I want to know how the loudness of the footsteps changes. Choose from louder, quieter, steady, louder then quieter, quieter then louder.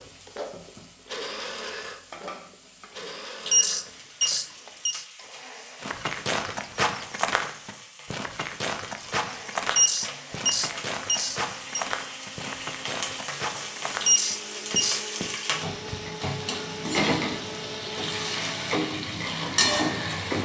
quieter.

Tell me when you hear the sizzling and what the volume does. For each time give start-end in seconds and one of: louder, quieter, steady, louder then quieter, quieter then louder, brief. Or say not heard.
0.0-20.4 louder.